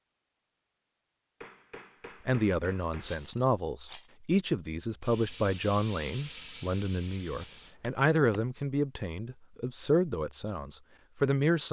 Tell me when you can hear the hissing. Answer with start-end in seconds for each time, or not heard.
5.0-7.8.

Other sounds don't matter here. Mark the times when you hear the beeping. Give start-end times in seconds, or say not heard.
not heard.